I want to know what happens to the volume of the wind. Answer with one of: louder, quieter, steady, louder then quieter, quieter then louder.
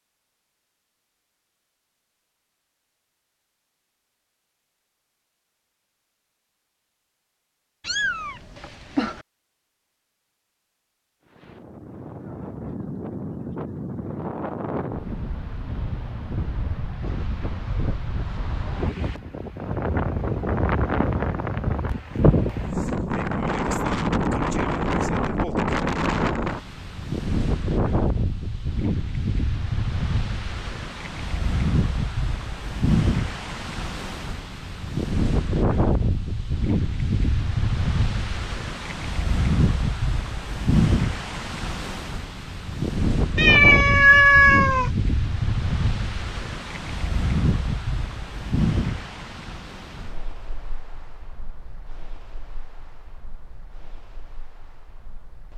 louder then quieter.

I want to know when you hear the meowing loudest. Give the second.
44 s.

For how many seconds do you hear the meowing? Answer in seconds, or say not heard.
3 s.